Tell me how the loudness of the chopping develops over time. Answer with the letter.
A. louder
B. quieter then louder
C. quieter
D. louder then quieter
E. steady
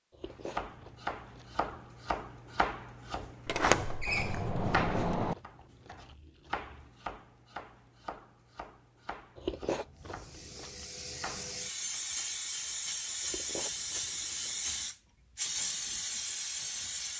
C.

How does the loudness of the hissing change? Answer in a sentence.
The volume of the hissing goes up.